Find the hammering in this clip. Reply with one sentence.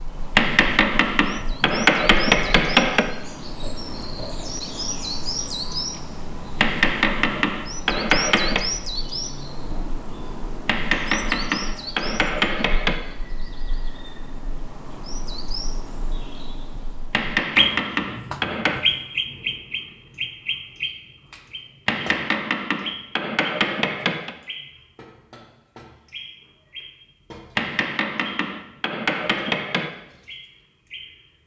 You can hear the hammering from 0.3 to 3.1 s, from 6.6 to 8.7 s, from 10.7 to 13.0 s, from 17.1 to 18.9 s, from 21.9 to 24.4 s and from 27.6 to 29.9 s.